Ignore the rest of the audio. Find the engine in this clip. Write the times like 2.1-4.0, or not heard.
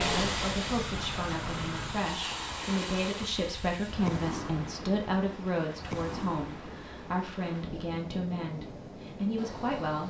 0.2-2.1.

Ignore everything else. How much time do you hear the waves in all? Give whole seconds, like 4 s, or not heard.
10 s.